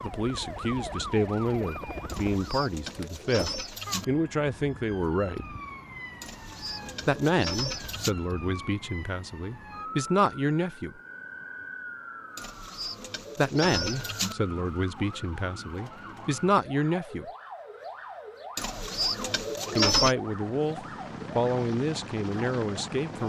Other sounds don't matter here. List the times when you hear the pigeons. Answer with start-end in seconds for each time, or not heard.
2.0-4.0, 6.2-8.2, 12.3-14.3, 18.6-20.1.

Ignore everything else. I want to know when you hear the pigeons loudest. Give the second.
20 s.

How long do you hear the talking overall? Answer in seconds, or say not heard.
17 s.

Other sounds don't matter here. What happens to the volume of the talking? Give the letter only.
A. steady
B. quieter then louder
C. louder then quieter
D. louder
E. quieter
A.